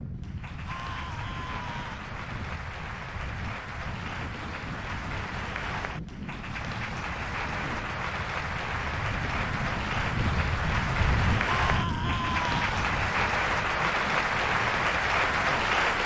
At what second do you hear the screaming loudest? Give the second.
12 s.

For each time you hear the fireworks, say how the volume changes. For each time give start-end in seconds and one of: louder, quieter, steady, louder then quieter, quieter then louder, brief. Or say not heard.
not heard.